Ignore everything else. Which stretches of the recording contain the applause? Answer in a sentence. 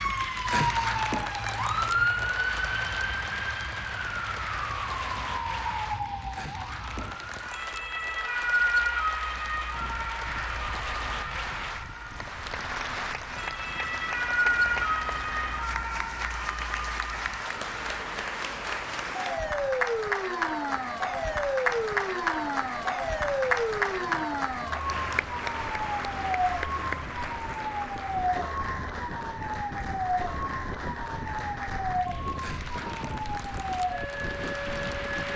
The applause can be heard from 0.0 to 35.3 s.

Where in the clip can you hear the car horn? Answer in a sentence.
You can't hear the car horn here.